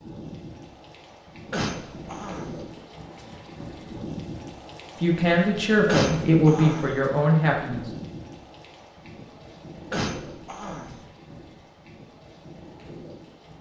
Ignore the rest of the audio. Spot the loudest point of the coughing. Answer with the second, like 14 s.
6 s.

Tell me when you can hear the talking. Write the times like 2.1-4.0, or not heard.
5.0-7.8.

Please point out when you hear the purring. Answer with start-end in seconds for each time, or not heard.
not heard.